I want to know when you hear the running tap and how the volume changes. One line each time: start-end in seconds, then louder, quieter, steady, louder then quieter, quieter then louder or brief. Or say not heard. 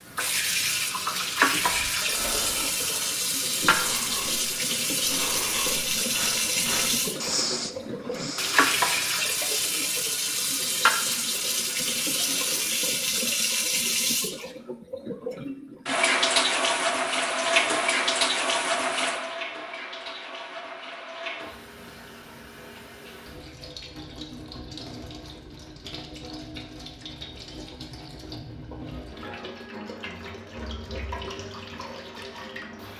0.1-32.9 quieter.